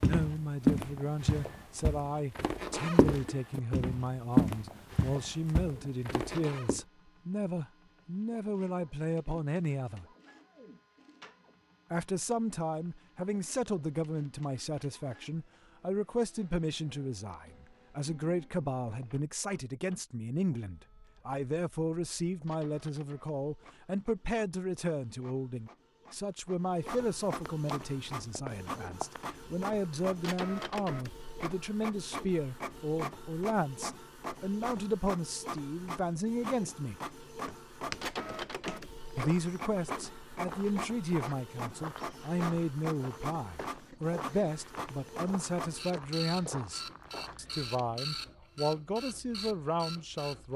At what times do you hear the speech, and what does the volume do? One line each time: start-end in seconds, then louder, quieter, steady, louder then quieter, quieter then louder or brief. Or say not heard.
0.0-10.1 steady
11.9-37.0 steady
39.1-50.5 steady.